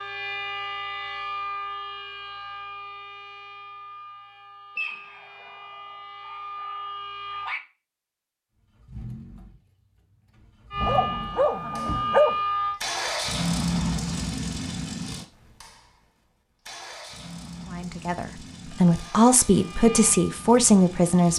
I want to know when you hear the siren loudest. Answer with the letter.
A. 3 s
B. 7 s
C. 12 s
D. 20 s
C.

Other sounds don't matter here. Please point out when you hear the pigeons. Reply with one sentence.
The pigeons can't be heard in this clip.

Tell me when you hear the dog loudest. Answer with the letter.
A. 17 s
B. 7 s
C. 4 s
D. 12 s
D.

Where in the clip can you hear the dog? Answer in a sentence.
You can hear the dog from 4.8 to 7.6 s and from 10.8 to 12.3 s.